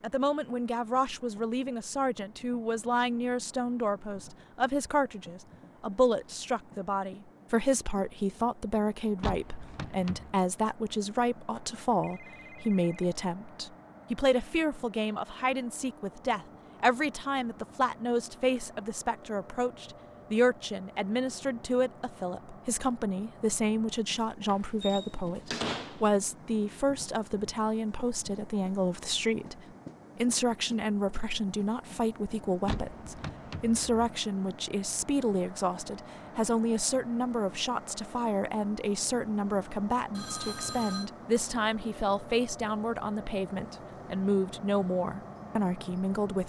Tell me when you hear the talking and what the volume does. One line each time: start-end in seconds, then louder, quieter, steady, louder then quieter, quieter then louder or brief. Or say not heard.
0.0-46.4 steady.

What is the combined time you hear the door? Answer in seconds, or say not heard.
4 s.